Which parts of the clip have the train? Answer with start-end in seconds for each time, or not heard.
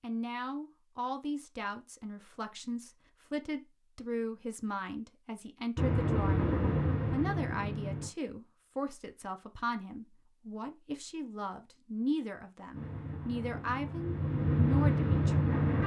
5.8-8.1, 12.7-15.8.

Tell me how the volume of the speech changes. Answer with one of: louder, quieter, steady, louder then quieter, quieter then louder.
steady.